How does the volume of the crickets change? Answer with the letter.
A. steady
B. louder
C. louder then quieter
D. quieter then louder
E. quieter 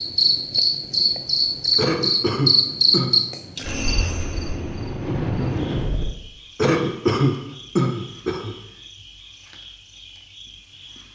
E.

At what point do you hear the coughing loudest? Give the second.
7 s.